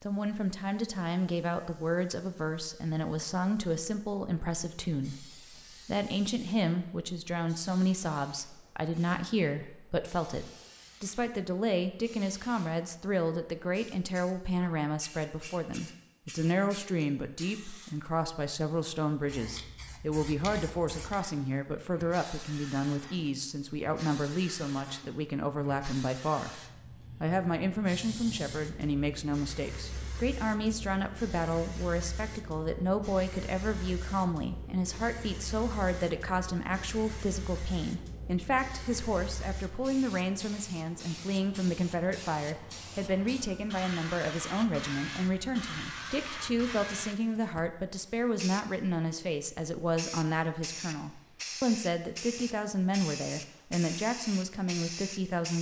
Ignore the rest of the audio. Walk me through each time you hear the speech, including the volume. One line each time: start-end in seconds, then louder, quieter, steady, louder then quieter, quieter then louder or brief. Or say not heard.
0.0-26.6 steady
27.2-55.5 steady.